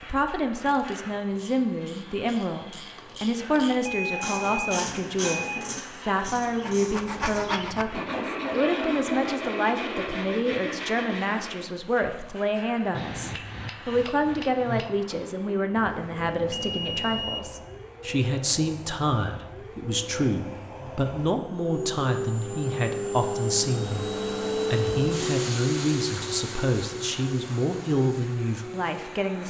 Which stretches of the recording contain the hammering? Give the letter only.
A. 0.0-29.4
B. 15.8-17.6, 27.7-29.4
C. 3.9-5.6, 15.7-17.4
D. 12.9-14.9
D.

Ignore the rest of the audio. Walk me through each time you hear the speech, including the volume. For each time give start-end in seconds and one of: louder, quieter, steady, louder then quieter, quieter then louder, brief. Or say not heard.
0.0-29.4 steady.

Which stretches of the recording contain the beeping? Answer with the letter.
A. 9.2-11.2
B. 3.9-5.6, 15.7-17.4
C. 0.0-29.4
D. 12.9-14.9
B.